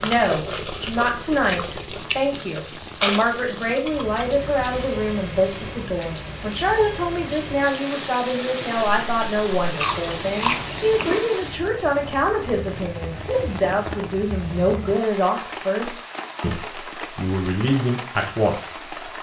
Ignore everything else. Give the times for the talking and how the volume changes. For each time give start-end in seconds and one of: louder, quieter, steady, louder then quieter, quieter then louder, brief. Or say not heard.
0.0-18.9 steady.